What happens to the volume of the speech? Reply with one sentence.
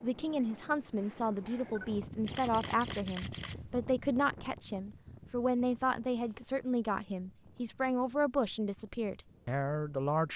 The loudness of the speech stays about the same.